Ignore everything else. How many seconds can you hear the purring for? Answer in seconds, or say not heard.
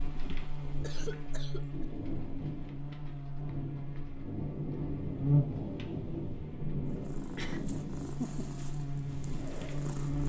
3 s.